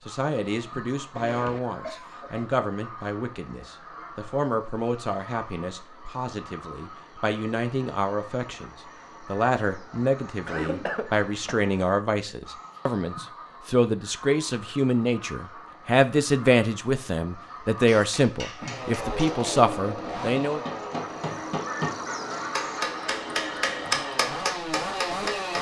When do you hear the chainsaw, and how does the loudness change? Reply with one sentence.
You can hear the chainsaw from 18.6 to 25.5 s, getting quieter then louder.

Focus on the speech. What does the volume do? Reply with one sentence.
The loudness of the speech goes up.